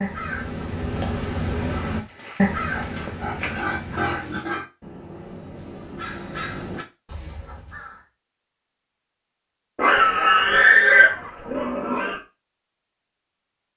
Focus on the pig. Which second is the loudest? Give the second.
11 s.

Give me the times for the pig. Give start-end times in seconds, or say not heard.
1.7-4.7, 9.8-12.2.